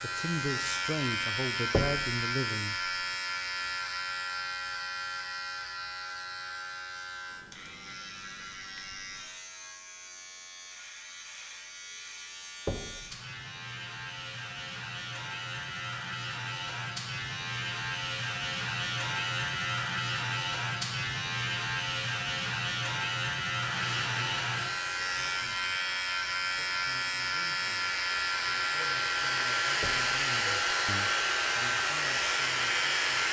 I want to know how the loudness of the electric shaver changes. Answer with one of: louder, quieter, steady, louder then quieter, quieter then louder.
quieter then louder.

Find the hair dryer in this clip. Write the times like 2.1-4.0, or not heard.
23.6-33.2.